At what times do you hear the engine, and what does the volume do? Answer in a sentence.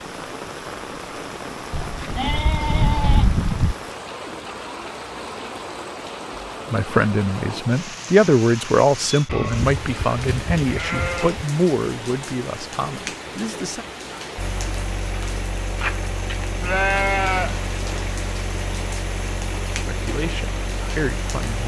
You can hear the engine from 14.3 to 21.6 s, at a steady volume.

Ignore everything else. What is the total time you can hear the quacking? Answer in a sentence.
You can't hear the quacking here.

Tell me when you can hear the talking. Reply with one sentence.
The talking can be heard from 6.7 to 13.8 s and from 19.9 to 21.6 s.